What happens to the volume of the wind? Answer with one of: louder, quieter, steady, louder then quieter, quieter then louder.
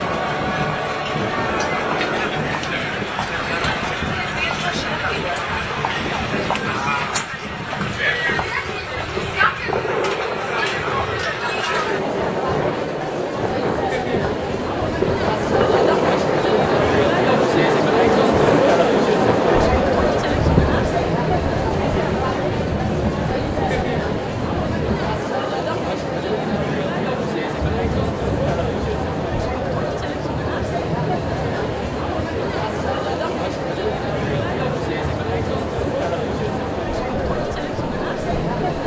louder then quieter.